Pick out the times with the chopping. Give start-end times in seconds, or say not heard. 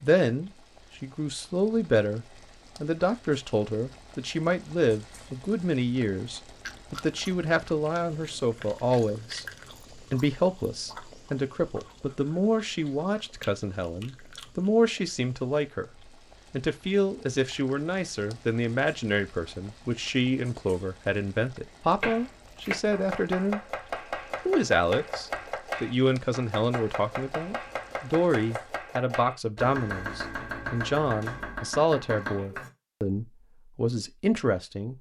22.0-32.7.